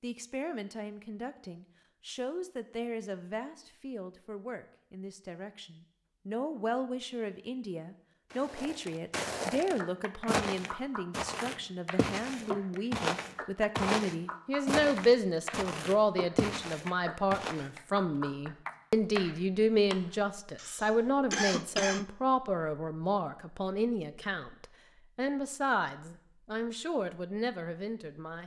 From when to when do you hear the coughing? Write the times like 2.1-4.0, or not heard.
20.6-22.1.